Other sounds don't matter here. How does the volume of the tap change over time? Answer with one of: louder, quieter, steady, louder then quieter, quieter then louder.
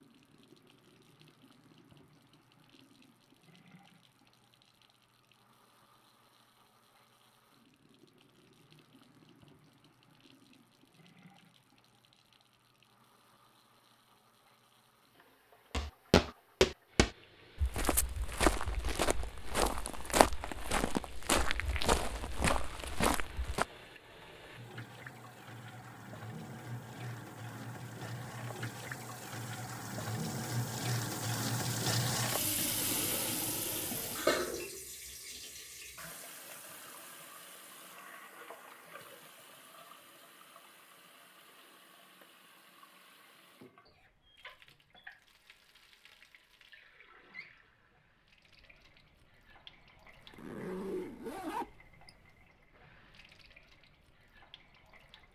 louder then quieter.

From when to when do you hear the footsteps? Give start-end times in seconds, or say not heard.
15.7-23.6.